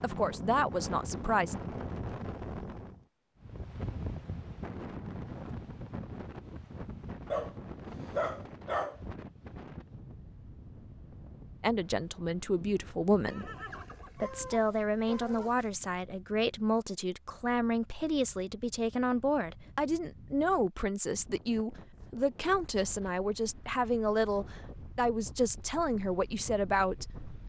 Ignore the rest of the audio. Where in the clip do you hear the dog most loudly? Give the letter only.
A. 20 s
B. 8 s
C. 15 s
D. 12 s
B.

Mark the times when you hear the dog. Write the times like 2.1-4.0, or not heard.
7.3-9.0, 13.8-15.7.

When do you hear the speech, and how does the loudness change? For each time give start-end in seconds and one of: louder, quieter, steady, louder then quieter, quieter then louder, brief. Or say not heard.
0.0-1.6 brief
11.6-13.4 brief
14.2-27.1 steady.